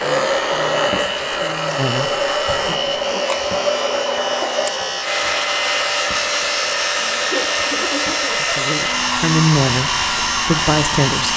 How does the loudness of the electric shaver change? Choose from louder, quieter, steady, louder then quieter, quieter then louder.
steady.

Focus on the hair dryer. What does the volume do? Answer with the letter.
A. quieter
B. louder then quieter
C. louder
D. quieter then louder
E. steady
E.